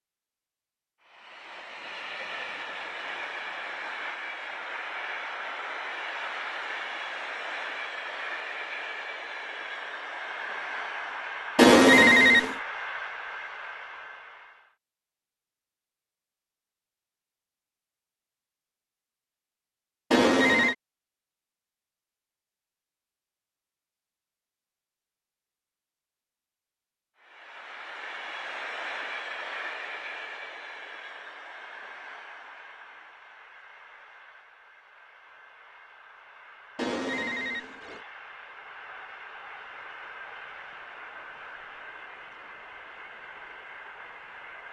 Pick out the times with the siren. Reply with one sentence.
You can't hear the siren here.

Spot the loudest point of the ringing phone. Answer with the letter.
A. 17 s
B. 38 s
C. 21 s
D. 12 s
D.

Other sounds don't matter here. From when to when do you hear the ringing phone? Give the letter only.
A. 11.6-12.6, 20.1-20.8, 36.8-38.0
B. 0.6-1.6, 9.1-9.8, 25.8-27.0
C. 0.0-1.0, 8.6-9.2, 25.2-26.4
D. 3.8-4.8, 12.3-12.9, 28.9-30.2
A.